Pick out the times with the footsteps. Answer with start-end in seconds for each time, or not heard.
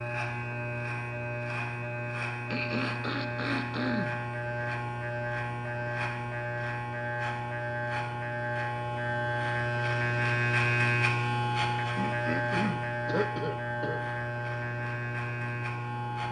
not heard.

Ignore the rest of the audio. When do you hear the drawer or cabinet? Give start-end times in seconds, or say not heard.
not heard.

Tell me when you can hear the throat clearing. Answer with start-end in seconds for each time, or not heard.
2.5-4.2, 11.9-14.0.